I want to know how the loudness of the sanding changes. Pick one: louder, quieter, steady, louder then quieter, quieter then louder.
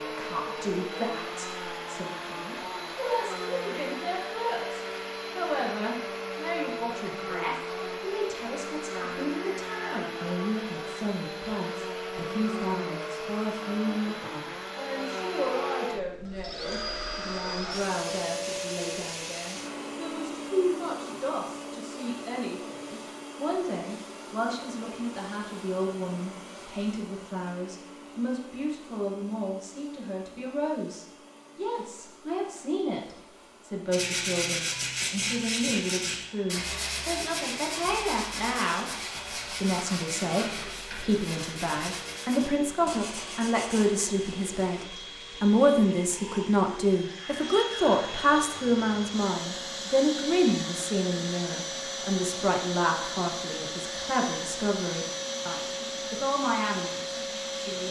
quieter.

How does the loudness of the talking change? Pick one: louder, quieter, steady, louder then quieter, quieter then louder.
louder.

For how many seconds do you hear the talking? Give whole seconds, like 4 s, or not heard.
58 s.